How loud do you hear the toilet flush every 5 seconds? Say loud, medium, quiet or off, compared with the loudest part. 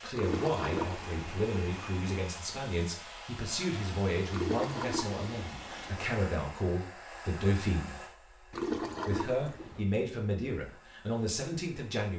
loud, loud, off.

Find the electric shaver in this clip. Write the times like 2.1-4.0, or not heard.
not heard.